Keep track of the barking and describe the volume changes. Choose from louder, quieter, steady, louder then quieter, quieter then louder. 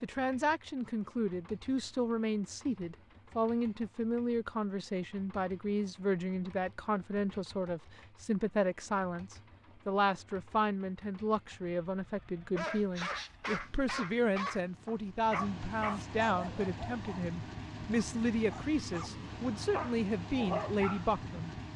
quieter then louder.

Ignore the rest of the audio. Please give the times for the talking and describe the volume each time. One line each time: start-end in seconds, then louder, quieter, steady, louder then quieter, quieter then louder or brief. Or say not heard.
0.0-21.6 steady.